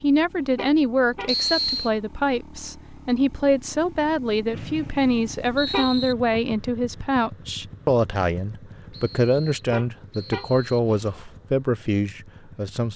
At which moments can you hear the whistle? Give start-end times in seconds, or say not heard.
1.2-1.9, 4.5-6.2, 8.9-10.9.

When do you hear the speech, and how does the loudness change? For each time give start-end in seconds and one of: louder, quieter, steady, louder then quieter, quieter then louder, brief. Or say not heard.
0.0-12.9 steady.